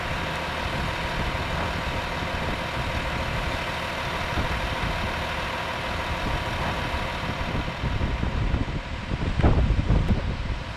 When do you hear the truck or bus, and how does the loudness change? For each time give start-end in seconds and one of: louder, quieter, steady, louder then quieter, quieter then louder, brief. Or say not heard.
0.0-10.7 quieter.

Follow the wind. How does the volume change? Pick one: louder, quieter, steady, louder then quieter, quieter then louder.
louder.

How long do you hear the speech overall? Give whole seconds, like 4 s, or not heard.
not heard.